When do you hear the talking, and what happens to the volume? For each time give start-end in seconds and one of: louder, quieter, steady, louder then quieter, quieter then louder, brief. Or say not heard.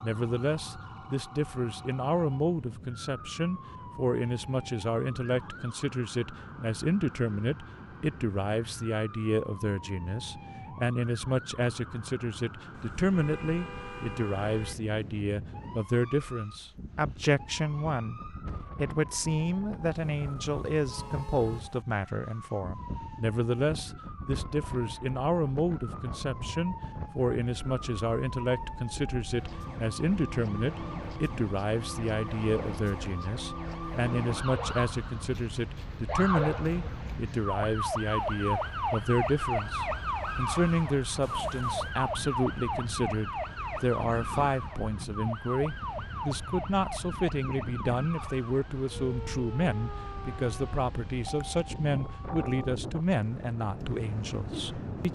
0.0-55.1 steady.